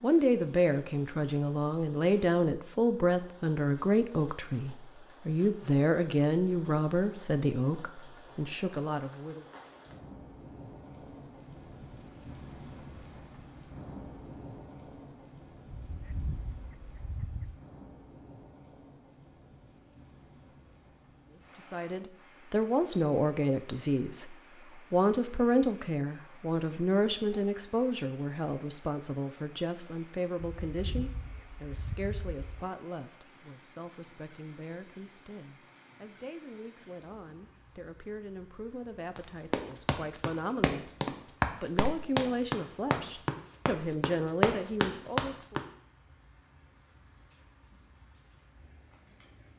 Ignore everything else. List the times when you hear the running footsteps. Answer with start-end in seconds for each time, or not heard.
39.1-45.6.